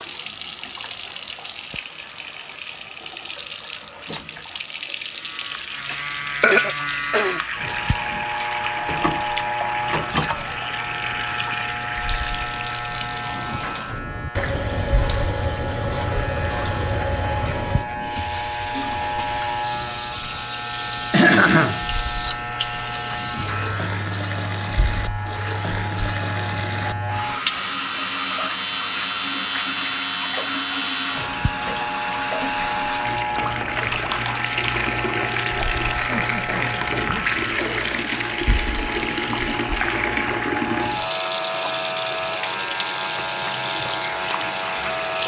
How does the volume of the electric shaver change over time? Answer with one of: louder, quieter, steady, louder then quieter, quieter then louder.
steady.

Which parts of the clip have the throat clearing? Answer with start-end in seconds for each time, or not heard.
5.9-7.4, 21.1-21.9, 36.0-37.4.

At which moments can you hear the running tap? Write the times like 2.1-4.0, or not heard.
0.0-45.2.